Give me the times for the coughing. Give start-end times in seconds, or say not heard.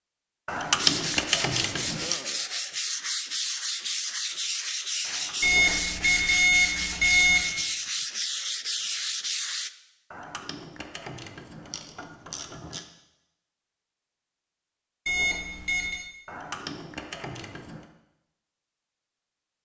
not heard.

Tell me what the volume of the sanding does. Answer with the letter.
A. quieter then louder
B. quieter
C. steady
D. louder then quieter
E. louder
C.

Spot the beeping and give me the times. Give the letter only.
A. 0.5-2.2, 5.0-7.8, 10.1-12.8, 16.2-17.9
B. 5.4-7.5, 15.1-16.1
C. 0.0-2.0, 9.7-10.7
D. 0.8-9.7
B.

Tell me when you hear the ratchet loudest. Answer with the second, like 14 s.
1 s.